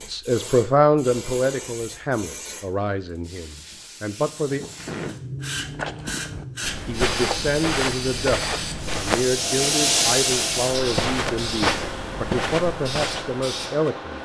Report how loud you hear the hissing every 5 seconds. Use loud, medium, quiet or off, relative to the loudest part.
medium, loud, loud.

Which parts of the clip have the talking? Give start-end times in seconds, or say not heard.
0.1-4.6, 6.8-14.2.